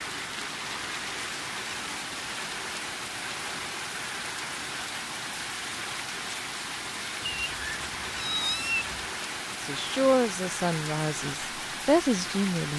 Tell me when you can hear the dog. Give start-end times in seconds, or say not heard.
not heard.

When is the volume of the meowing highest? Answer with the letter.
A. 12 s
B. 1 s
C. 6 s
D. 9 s
D.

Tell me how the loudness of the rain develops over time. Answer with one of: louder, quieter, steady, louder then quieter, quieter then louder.
steady.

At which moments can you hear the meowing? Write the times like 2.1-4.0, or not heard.
7.2-9.1.